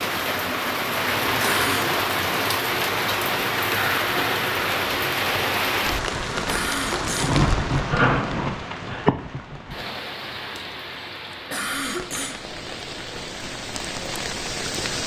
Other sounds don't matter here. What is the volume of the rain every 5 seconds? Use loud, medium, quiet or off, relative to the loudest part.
loud, loud, medium.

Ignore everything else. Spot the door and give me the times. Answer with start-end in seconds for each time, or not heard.
7.9-9.1.